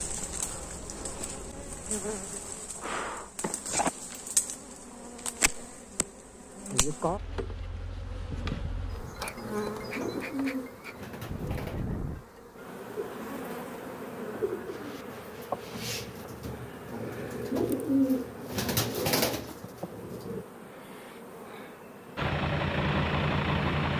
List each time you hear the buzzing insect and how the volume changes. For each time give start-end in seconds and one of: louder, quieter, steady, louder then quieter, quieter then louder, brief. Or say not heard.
0.0-23.9 quieter.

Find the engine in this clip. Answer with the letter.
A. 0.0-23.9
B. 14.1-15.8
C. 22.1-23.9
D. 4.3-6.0
C.